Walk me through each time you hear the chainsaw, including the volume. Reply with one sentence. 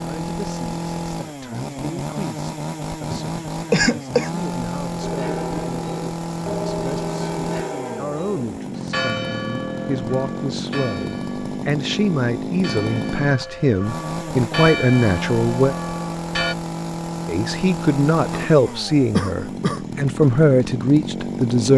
The chainsaw can be heard from 0.0 to 21.7 s, at a steady volume.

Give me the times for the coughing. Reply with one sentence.
The coughing can be heard from 3.1 to 4.3 s and from 18.3 to 20.3 s.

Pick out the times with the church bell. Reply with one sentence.
The church bell can be heard from 5.0 to 16.6 s.